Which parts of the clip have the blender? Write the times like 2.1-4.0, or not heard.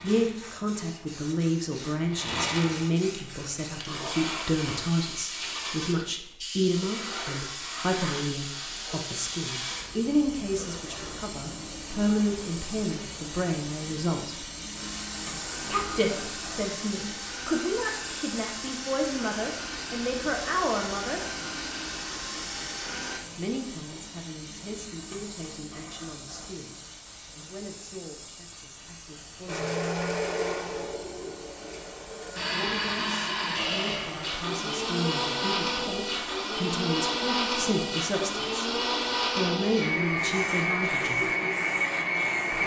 14.8-23.2, 29.4-42.6.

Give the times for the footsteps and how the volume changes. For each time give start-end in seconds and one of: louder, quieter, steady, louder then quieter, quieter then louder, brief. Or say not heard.
not heard.